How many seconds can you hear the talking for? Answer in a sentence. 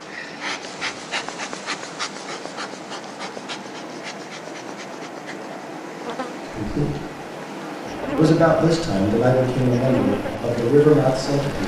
The talking can be heard for 4 seconds in total.